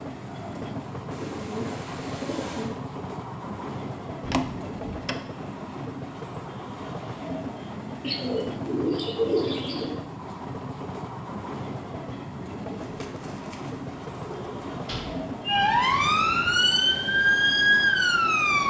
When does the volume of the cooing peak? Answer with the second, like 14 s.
9 s.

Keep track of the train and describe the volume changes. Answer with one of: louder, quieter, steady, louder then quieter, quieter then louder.
steady.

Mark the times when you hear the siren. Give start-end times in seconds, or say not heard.
15.4-18.6.